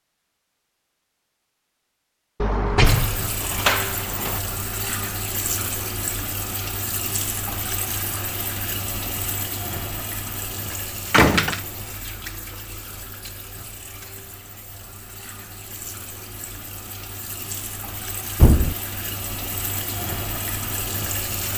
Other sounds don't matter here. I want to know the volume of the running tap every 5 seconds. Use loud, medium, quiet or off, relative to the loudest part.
loud, loud, medium, medium, loud.